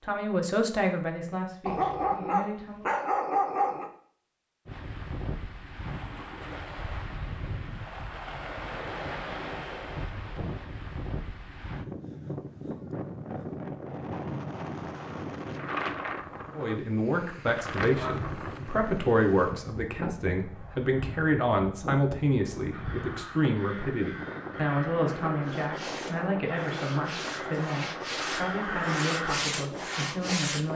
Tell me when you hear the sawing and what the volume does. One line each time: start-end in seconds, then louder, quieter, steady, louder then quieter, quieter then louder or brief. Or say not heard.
25.4-30.7 louder.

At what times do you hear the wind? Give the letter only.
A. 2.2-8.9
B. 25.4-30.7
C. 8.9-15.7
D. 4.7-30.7
D.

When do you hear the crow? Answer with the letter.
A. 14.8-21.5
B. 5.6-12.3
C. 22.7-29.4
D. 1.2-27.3
C.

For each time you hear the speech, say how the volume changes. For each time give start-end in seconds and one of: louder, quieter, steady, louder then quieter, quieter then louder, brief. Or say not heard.
0.0-2.9 brief
16.6-30.7 quieter.